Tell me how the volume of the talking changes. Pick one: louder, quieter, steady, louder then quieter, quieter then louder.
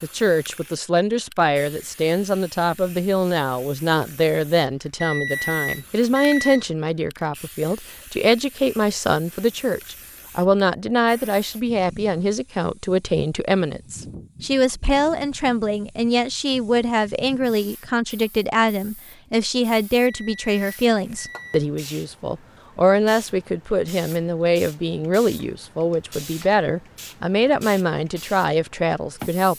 steady.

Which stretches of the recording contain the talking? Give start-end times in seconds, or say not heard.
0.0-29.5.